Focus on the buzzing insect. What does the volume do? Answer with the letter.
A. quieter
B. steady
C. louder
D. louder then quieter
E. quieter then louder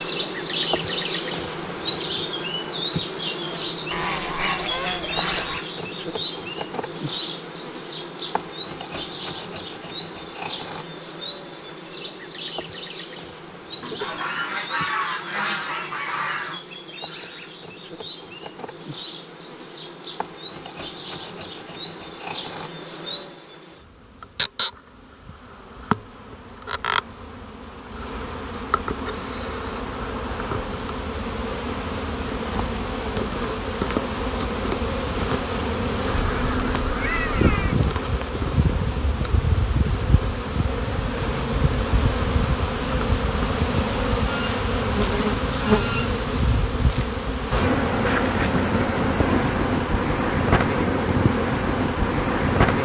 E.